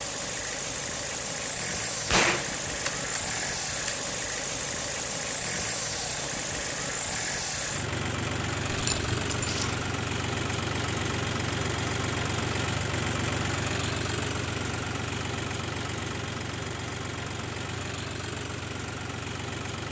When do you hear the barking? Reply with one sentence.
The barking can be heard from 8.7 to 9.8 s.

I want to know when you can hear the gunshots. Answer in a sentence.
You can hear the gunshots from 2.0 to 4.0 s.